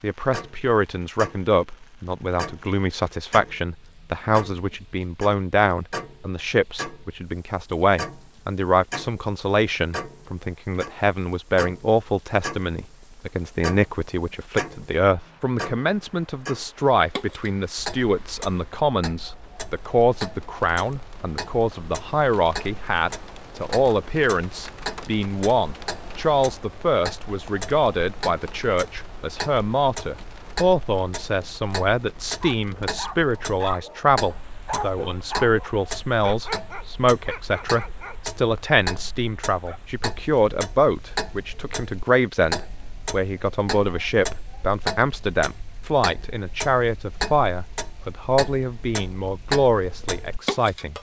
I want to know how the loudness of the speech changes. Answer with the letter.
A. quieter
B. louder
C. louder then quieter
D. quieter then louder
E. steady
E.